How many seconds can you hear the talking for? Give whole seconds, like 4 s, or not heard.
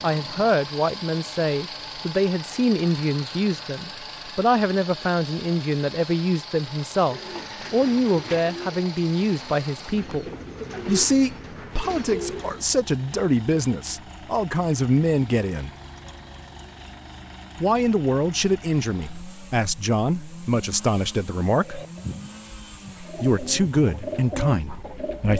22 s.